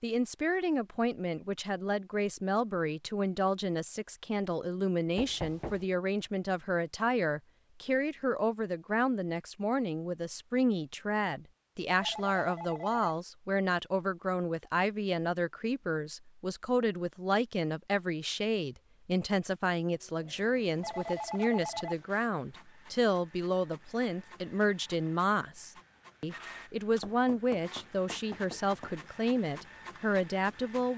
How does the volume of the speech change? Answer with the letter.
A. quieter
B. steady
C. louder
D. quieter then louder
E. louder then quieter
B.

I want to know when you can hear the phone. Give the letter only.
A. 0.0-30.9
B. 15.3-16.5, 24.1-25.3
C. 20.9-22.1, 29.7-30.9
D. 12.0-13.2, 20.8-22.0
D.